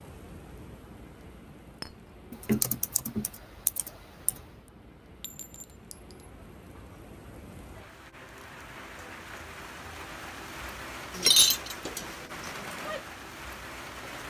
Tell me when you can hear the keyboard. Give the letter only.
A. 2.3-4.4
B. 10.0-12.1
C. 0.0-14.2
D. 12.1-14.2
A.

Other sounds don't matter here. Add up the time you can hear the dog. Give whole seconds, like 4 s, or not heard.
not heard.